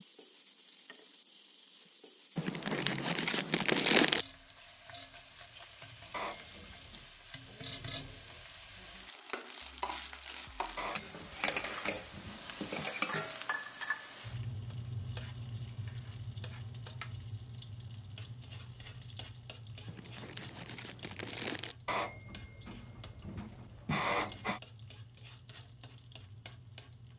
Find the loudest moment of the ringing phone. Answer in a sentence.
The volume of the ringing phone peaks at 24 seconds.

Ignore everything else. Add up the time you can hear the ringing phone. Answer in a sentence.
The ringing phone can be heard for 6 seconds in total.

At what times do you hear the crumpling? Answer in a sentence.
You can hear the crumpling from 2.4 to 4.2 s and from 19.9 to 21.8 s.